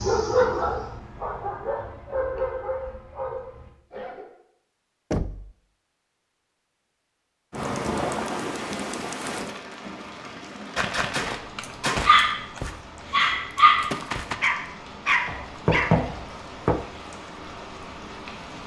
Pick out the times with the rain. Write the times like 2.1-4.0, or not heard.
7.5-18.6.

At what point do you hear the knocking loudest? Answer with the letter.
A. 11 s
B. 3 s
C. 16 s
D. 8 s
C.